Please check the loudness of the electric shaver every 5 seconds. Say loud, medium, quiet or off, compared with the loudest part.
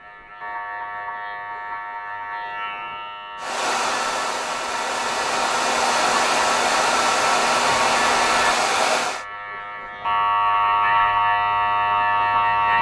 quiet, medium, loud.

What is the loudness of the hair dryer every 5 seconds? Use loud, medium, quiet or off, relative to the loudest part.
medium, loud, off.